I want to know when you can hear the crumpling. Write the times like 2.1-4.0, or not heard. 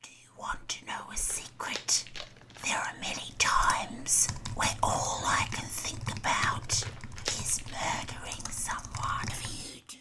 0.8-2.8, 6.4-7.8.